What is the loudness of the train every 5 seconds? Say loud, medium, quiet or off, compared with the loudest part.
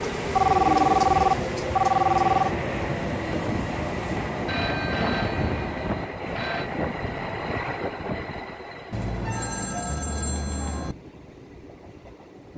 loud, loud, quiet.